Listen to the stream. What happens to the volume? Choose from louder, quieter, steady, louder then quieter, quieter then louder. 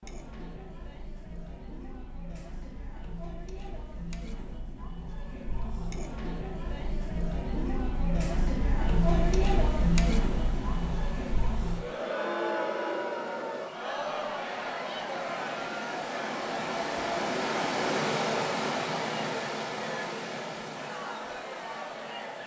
louder then quieter.